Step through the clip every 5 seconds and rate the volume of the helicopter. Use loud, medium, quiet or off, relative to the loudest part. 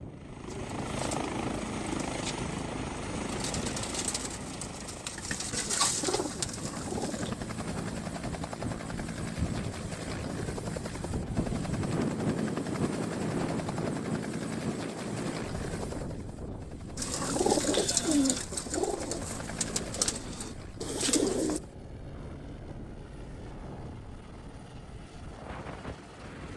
loud, loud, loud, medium, quiet, quiet.